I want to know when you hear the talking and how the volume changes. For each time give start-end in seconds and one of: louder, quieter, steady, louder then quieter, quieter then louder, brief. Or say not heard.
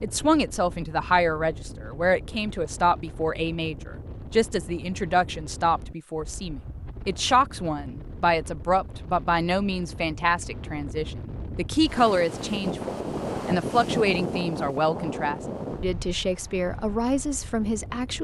0.0-18.1 steady.